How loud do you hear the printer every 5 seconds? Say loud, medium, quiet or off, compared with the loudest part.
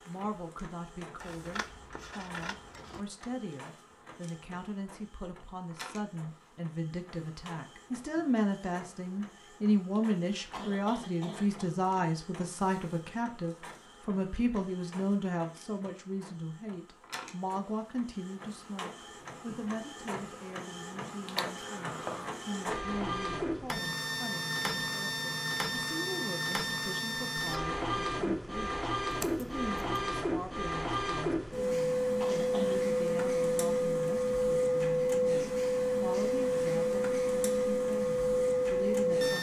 quiet, quiet, quiet, quiet, medium, medium, loud, loud.